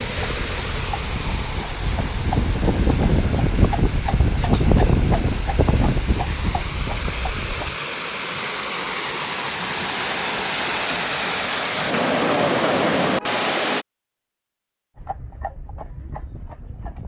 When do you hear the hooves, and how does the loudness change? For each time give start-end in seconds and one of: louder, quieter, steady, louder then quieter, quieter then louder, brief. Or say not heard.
0.0-7.8 louder then quieter
14.9-17.0 brief.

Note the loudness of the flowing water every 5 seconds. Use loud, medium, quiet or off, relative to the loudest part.
medium, medium, loud, off.